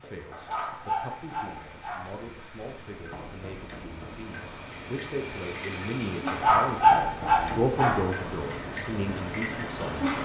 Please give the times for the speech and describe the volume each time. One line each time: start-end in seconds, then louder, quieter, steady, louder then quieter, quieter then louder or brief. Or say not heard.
0.0-10.1 louder.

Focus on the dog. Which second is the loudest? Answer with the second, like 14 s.
7 s.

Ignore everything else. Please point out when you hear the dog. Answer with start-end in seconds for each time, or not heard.
0.3-2.1, 6.2-8.1.